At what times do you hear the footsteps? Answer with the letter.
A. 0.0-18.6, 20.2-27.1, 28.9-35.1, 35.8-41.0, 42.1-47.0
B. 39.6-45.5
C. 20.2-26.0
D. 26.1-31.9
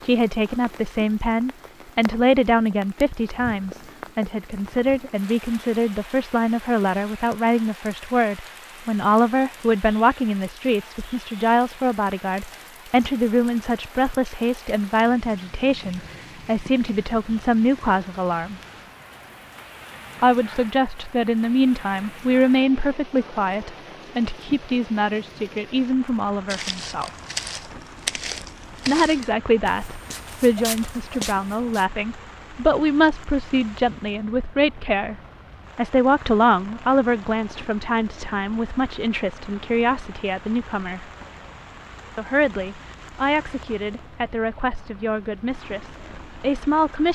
D.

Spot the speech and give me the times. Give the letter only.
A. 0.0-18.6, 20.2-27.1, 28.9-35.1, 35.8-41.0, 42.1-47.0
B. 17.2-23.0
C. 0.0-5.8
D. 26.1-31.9
A.